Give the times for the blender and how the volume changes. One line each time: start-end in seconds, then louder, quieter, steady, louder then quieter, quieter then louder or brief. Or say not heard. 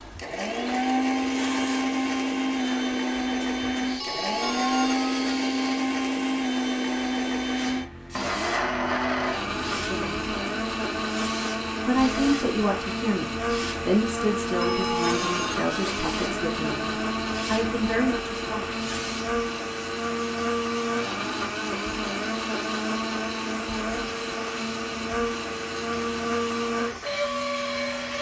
0.0-28.1 steady.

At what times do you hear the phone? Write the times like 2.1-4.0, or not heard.
4.0-5.4, 14.6-15.9.